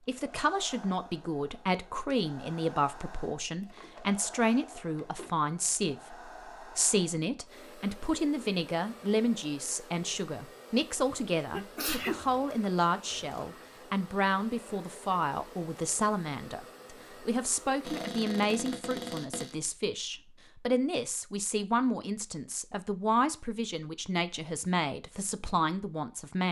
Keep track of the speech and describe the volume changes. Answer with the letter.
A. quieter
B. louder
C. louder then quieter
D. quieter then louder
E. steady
E.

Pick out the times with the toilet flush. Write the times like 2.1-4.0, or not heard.
not heard.